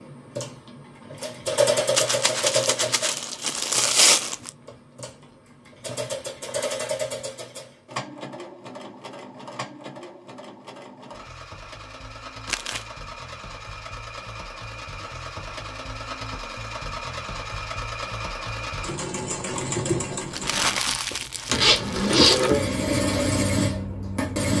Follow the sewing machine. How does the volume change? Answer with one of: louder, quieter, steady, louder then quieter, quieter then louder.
quieter then louder.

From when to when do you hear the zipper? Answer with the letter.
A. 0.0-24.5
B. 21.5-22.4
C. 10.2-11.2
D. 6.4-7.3
B.